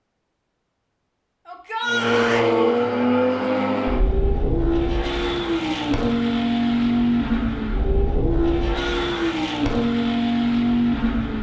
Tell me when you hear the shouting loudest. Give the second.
2 s.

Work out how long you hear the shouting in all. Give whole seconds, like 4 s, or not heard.
2 s.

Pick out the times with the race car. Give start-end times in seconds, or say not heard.
1.8-11.3.